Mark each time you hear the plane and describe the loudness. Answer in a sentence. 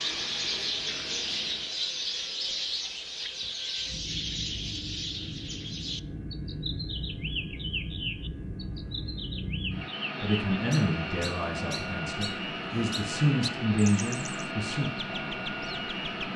You can hear the plane from 0.0 to 16.3 s, getting louder.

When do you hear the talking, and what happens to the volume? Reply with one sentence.
You can hear the talking from 10.2 to 14.9 s, getting quieter then louder.